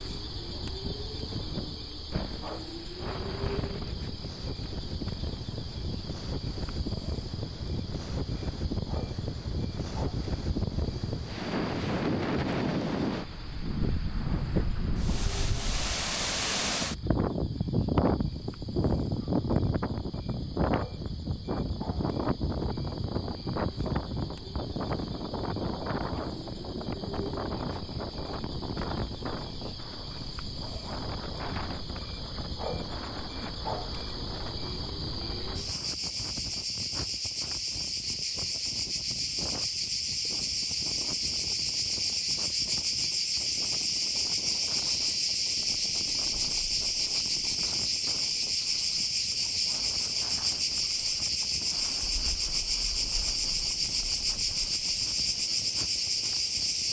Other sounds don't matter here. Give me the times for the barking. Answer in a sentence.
The barking can't be heard in this clip.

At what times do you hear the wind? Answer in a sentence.
You can hear the wind from 0.2 to 56.8 s.